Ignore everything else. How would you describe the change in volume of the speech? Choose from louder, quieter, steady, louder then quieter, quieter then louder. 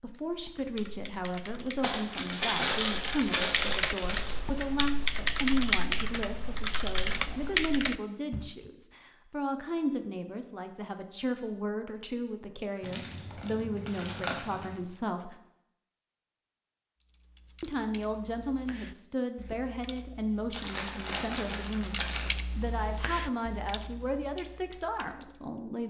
steady.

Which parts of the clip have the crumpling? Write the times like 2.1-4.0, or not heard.
1.8-4.5, 12.8-14.8, 20.5-22.4.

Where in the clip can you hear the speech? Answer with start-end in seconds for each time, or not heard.
0.0-15.3, 17.6-25.8.